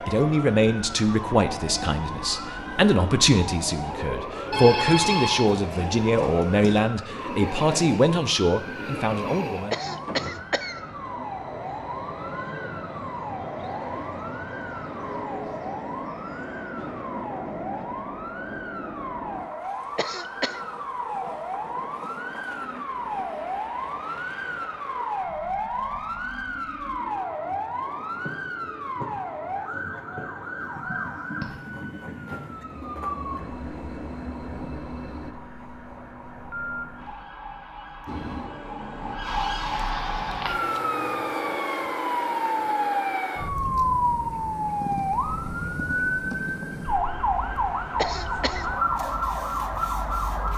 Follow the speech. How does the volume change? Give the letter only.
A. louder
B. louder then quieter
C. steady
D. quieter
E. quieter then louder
C.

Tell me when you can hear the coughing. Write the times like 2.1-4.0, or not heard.
9.7-10.8, 19.9-20.6, 48.0-48.7.